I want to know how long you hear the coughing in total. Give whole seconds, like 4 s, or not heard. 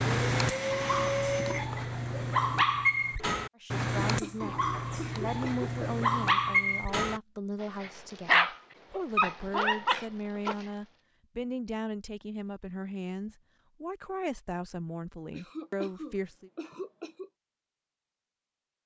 4 s.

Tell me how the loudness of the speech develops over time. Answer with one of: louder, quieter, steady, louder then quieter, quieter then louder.
steady.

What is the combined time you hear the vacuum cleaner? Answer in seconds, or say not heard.
2 s.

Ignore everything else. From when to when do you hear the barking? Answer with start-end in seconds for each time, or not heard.
0.0-10.7.